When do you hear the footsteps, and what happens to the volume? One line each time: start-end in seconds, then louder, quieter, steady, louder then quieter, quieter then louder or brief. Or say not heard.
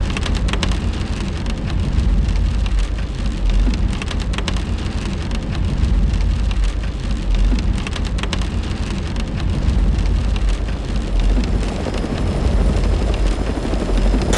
not heard.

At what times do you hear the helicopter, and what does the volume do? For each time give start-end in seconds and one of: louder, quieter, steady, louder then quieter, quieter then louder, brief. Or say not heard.
9.5-14.3 louder.